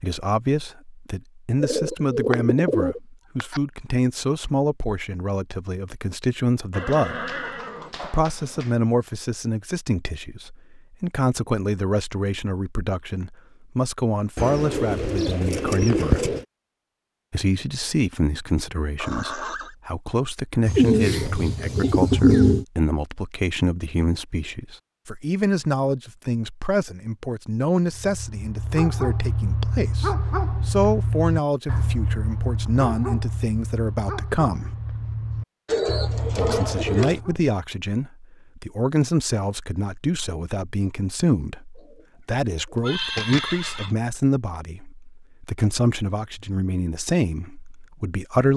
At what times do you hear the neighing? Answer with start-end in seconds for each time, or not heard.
6.7-8.8, 18.9-19.8, 42.8-44.0.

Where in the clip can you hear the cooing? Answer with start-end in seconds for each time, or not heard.
1.6-3.6, 14.3-16.4, 20.6-22.6, 35.6-37.2, 41.8-43.4.